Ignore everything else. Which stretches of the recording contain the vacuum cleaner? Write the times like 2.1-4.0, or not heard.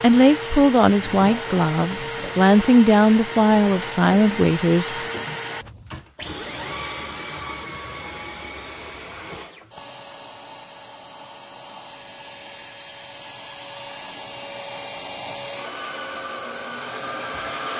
0.0-17.7.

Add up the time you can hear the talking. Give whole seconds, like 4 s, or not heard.
5 s.